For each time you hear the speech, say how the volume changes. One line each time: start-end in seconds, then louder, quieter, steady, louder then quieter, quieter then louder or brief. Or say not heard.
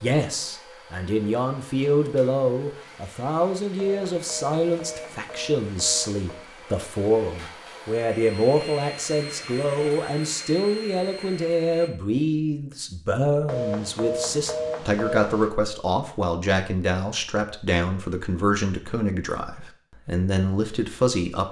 0.0-21.4 steady.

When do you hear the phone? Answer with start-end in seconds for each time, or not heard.
3.8-6.2, 13.4-15.5.